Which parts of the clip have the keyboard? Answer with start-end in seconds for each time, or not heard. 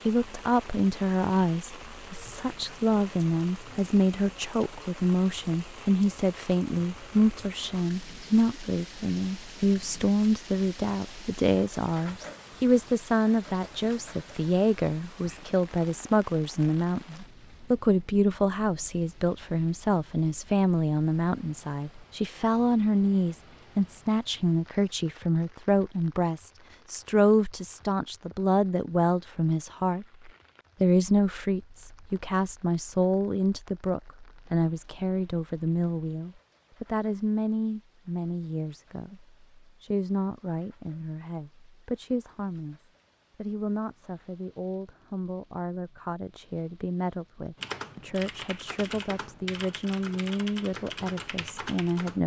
47.5-52.2.